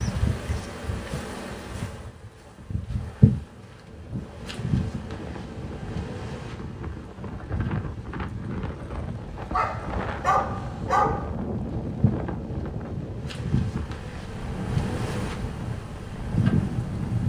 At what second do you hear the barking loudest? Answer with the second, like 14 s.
11 s.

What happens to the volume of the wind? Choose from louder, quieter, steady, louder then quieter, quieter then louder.
louder.